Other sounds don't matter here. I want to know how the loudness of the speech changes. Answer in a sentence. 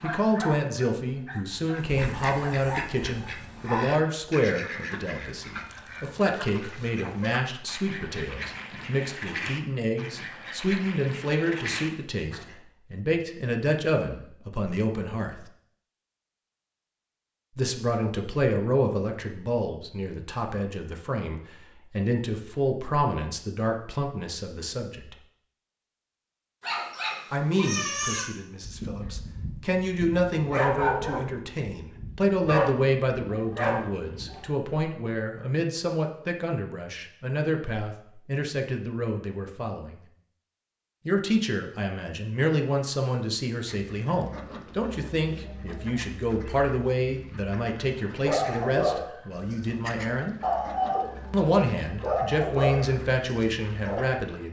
The loudness of the speech stays about the same.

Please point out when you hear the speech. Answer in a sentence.
You can hear the speech from 0.0 to 15.4 s, from 17.6 to 25.1 s, from 27.3 to 40.0 s, from 41.0 to 50.4 s and from 51.3 to 54.4 s.